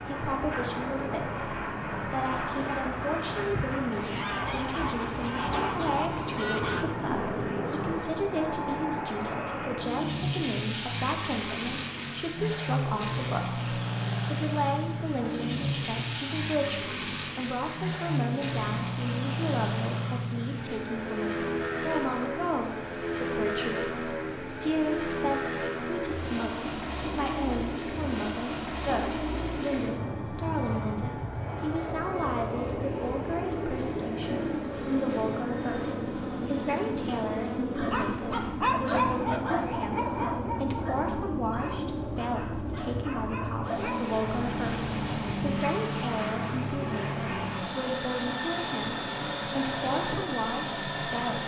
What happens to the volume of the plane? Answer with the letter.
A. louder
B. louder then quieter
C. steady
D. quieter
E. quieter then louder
C.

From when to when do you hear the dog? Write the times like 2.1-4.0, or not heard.
37.8-44.1.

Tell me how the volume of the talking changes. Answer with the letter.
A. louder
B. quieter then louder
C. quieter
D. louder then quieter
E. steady
E.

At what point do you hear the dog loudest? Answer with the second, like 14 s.
39 s.